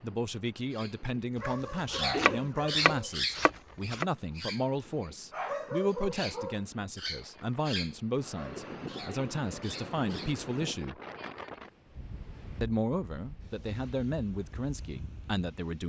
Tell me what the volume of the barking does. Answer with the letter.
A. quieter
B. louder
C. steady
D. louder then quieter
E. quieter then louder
A.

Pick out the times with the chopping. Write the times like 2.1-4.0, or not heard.
1.4-4.0.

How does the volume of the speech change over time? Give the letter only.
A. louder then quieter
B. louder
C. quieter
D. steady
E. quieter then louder
D.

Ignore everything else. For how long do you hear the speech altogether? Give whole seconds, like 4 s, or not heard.
14 s.